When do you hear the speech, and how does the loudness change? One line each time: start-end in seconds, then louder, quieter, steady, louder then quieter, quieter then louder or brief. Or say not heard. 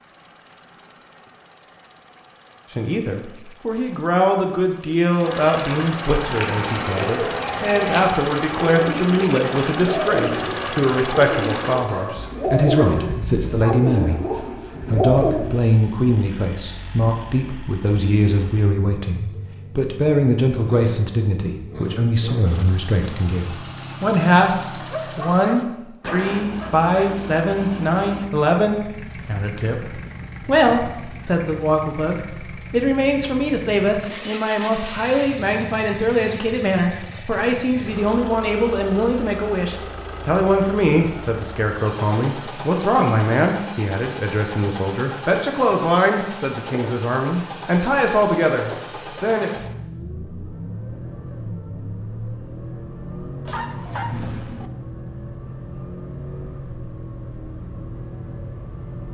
2.7-49.5 steady.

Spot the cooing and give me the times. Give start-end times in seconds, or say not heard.
6.2-15.6.